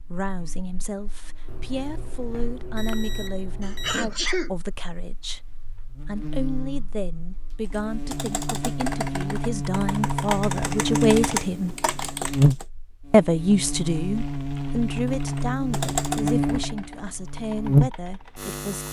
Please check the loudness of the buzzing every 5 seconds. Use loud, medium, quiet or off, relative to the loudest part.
quiet, medium, loud, loud.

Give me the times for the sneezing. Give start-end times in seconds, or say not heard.
3.6-4.5.